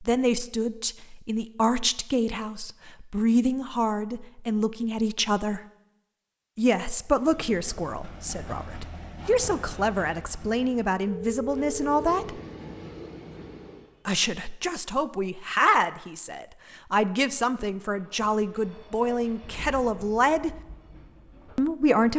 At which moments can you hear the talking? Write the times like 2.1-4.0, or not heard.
0.0-5.6, 6.5-12.4, 14.1-20.6, 21.6-22.1.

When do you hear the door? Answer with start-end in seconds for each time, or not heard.
not heard.